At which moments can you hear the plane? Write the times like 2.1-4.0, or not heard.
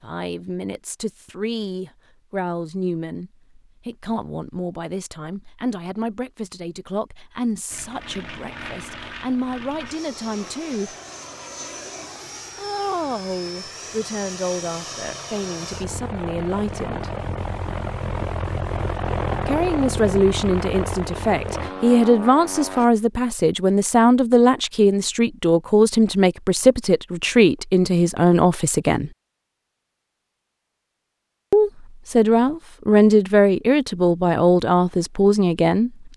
7.7-22.9.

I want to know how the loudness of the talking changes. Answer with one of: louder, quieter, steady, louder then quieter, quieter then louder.
louder.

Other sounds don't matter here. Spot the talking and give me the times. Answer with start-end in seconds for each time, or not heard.
0.0-10.9, 12.6-17.1, 19.4-29.1, 31.5-35.9.